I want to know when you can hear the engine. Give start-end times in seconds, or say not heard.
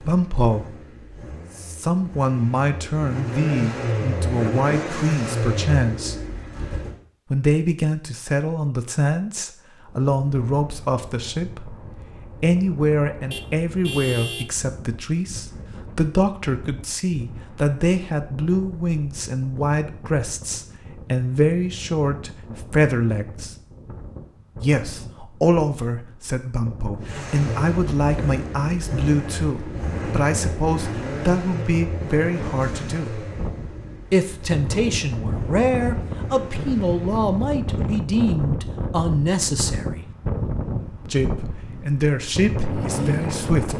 0.0-7.0, 27.0-37.4.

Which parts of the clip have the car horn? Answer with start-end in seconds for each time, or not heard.
13.3-14.5.